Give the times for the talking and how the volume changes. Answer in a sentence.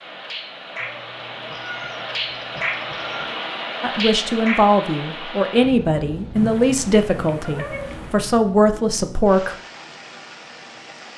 The talking can be heard from 3.8 to 9.6 s, getting quieter then louder.